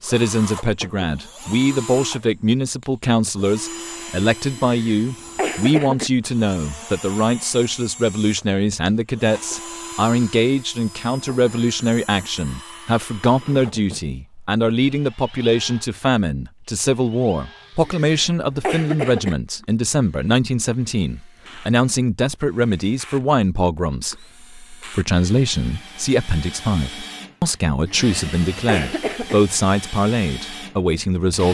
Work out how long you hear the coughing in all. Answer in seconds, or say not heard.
5 s.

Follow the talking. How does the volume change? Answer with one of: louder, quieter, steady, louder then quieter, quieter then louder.
steady.